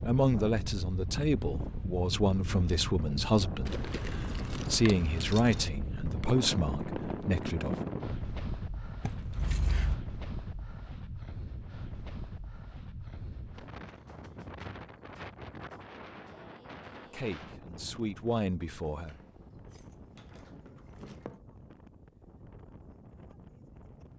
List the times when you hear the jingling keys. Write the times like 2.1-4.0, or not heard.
3.6-5.7, 9.0-10.0, 19.1-21.4.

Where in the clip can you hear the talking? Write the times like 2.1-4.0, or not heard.
0.0-7.8, 17.1-19.1.